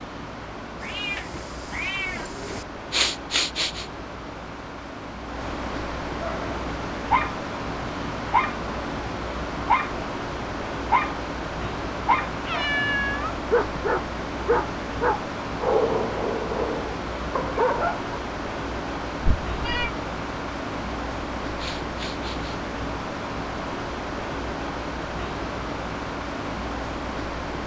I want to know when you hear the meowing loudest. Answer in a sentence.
The volume of the meowing peaks at 13 seconds.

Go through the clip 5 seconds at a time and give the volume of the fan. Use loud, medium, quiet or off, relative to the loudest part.
medium, loud, loud, loud, loud, loud.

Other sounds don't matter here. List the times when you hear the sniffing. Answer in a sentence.
The sniffing can be heard from 2.9 to 3.9 s and from 21.6 to 22.6 s.